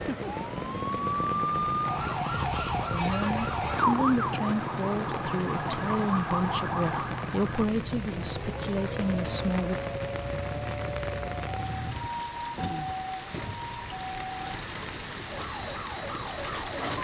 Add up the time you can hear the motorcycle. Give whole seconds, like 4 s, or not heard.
12 s.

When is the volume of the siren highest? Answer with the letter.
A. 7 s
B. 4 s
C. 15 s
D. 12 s
B.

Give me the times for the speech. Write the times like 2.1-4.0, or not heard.
2.9-9.8.